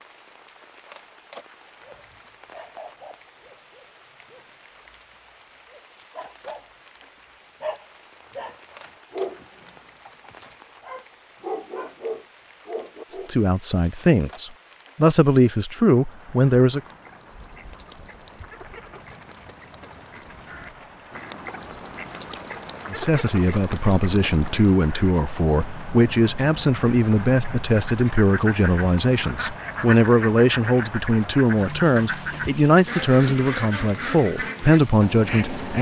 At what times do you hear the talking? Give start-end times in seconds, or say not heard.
13.2-16.8, 22.9-35.7.